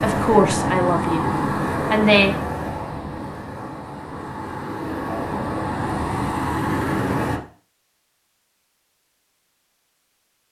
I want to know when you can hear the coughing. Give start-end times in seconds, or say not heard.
not heard.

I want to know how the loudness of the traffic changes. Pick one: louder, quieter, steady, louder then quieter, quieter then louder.
quieter then louder.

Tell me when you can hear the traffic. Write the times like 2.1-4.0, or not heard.
0.0-7.4.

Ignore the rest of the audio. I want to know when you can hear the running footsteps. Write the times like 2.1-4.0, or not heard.
not heard.